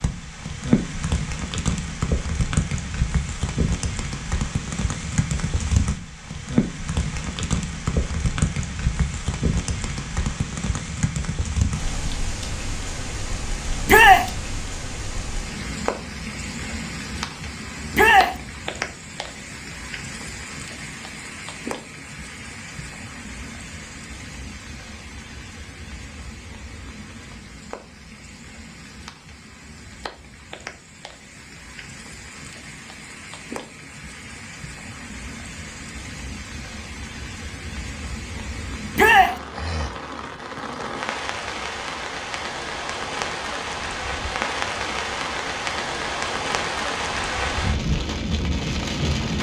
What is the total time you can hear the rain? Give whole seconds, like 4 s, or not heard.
49 s.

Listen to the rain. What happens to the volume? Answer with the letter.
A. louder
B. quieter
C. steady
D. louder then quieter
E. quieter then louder
E.